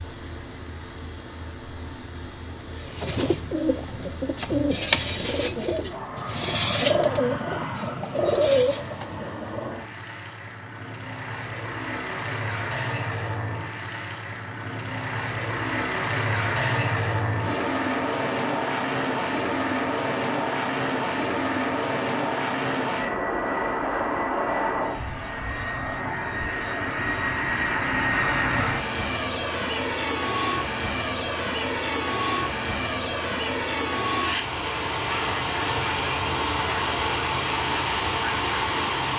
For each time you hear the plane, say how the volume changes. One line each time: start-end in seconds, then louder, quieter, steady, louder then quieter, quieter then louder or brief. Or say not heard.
0.0-39.1 louder.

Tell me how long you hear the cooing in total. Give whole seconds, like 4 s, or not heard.
7 s.